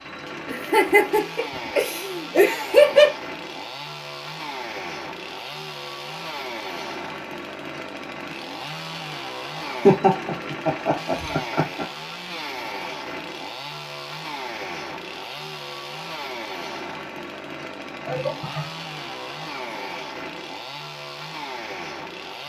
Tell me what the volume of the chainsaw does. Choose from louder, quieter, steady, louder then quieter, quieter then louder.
steady.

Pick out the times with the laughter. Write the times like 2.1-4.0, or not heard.
0.5-3.1, 9.7-11.8, 18.1-19.1.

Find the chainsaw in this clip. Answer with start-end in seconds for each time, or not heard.
0.0-22.4.